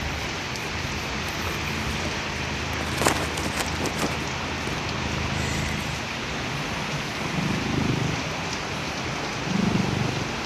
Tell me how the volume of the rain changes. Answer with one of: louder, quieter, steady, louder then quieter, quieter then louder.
steady.